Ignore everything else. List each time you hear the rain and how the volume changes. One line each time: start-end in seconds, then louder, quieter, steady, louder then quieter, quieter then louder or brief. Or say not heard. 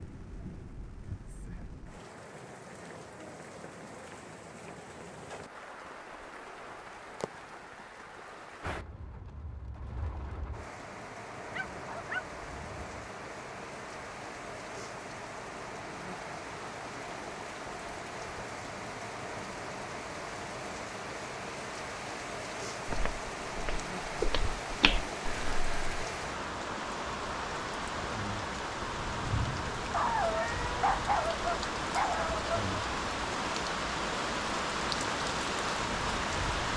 0.0-36.7 louder.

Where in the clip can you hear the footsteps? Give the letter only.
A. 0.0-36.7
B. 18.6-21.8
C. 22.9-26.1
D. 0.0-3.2
C.